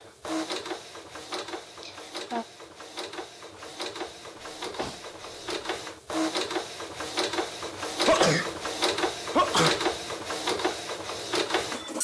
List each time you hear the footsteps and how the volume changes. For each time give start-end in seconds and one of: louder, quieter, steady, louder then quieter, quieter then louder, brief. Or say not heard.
not heard.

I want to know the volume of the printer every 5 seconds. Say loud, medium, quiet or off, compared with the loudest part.
medium, loud, loud.